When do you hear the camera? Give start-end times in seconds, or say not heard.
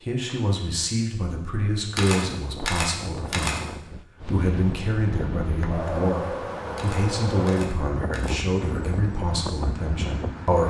1.9-3.6, 6.8-8.4.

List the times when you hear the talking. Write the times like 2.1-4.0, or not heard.
0.0-10.6.